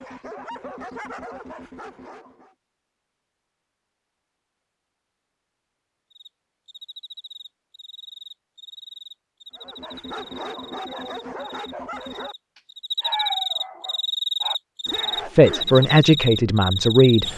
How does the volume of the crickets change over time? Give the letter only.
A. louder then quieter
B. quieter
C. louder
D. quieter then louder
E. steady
C.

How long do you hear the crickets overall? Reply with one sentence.
You can hear the crickets for 11 seconds altogether.